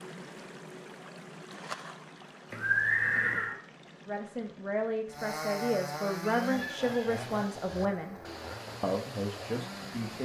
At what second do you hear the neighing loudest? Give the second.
3 s.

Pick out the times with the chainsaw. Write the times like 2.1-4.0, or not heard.
5.1-10.2.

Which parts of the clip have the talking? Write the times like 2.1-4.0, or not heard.
4.0-10.2.